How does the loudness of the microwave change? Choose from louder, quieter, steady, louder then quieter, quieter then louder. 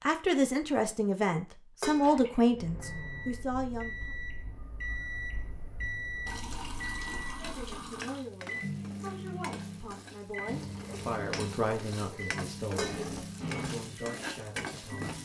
steady.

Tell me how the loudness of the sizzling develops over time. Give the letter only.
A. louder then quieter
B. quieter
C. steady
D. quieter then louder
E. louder
E.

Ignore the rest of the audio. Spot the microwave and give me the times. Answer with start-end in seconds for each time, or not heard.
2.5-15.2.